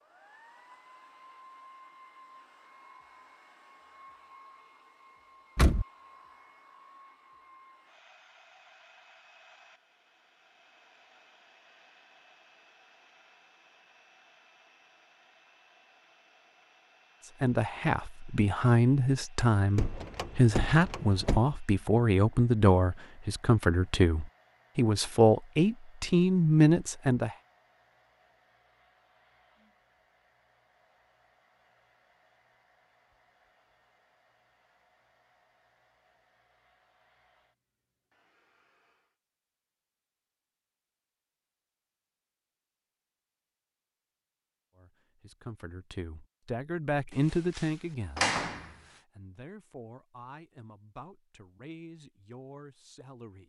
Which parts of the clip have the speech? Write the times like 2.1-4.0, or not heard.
17.4-27.4, 44.8-53.4.